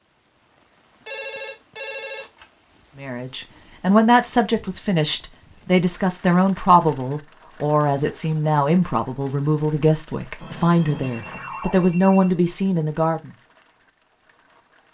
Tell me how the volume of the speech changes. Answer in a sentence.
The loudness of the speech stays about the same.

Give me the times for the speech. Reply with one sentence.
The speech can be heard from 3.0 to 13.3 s.